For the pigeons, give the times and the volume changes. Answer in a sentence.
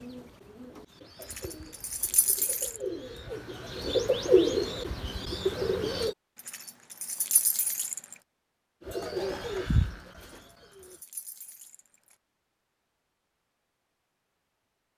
You can hear the pigeons from 0.0 to 6.2 s, getting louder then quieter; and briefly from 8.8 to 11.0 s.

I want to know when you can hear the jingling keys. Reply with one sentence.
The jingling keys can be heard from 1.2 to 2.8 s, from 6.5 to 8.2 s and from 10.4 to 12.2 s.